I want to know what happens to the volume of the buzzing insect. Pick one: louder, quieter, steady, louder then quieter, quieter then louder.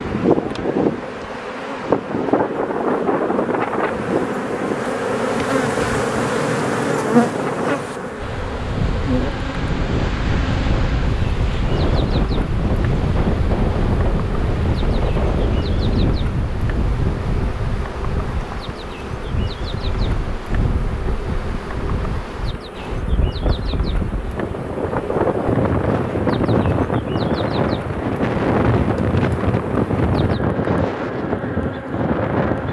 quieter.